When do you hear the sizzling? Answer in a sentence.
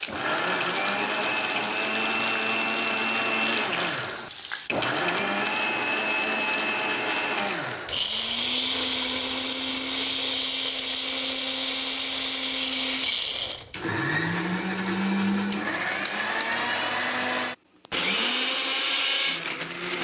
The sizzling can be heard from 0.0 to 4.8 s.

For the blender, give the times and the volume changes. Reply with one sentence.
You can hear the blender from 0.0 to 19.9 s, at a steady volume.